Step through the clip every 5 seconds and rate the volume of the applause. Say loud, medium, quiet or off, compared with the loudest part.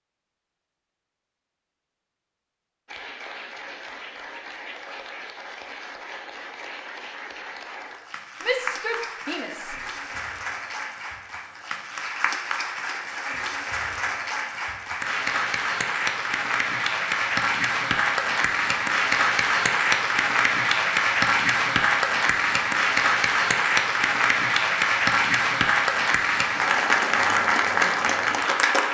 quiet, quiet, medium, loud, loud, loud.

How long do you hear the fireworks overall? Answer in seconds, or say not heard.
not heard.